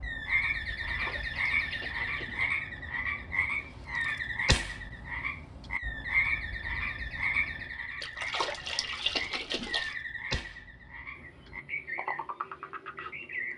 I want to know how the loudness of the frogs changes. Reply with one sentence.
The volume of the frogs goes down.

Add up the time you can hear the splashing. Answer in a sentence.
You can hear the splashing for 4 seconds altogether.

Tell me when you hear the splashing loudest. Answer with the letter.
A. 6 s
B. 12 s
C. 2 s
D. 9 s
D.